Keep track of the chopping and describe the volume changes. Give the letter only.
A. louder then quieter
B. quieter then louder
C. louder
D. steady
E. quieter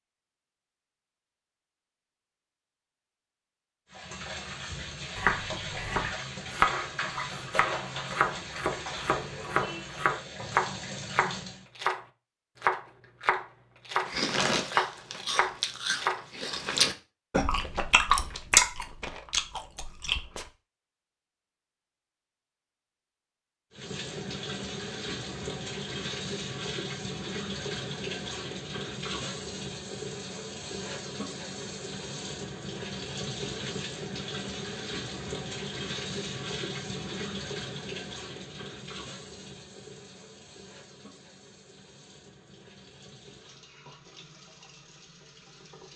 D.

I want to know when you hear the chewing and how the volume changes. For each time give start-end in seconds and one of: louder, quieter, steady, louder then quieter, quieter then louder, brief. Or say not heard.
14.0-20.5 louder then quieter.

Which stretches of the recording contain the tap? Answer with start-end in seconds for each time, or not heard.
3.9-11.7, 23.7-45.9.